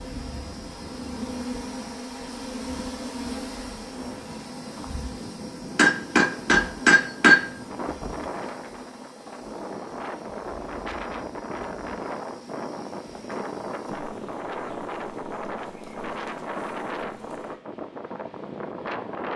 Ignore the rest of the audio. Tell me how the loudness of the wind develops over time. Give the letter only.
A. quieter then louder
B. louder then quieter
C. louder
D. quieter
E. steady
C.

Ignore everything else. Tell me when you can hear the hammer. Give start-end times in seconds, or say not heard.
5.8-7.4.